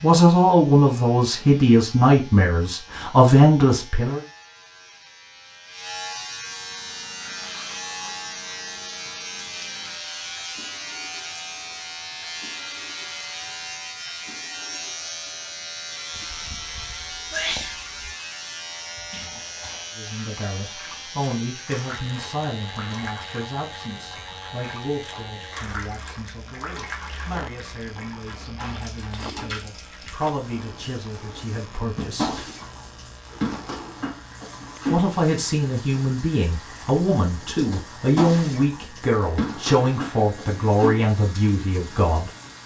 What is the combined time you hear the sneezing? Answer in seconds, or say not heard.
2 s.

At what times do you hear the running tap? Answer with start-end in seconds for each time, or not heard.
6.5-42.6.